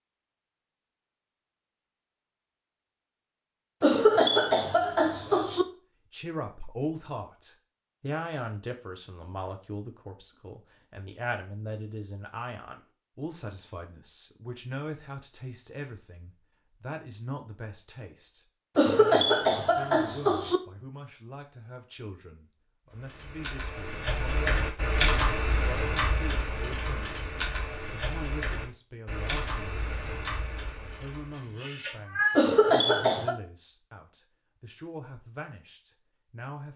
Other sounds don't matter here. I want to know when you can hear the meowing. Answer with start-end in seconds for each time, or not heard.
31.4-32.5.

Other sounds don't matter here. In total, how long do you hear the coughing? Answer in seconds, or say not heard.
5 s.